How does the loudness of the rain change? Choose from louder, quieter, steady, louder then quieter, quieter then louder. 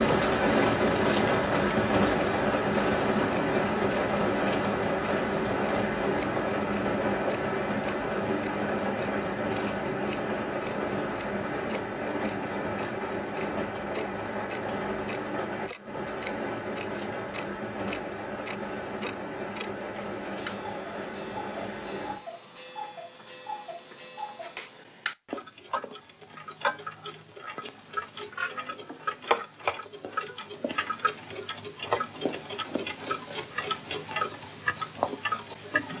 quieter.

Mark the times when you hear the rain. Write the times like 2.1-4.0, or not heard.
0.0-22.2.